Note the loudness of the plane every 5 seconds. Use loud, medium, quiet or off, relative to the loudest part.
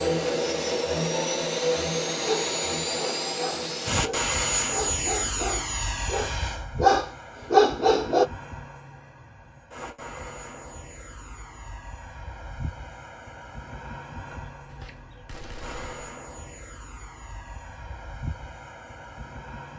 loud, medium, quiet, quiet.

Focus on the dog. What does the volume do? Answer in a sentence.
The loudness of the dog goes up.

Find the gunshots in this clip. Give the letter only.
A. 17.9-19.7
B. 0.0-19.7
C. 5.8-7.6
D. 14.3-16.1
D.